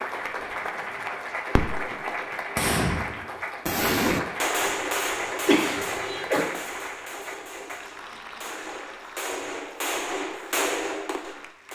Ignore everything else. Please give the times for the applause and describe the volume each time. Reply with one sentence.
The applause can be heard from 0.0 to 11.6 s, getting quieter.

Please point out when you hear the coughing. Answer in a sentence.
The coughing can be heard from 5.5 to 6.5 s.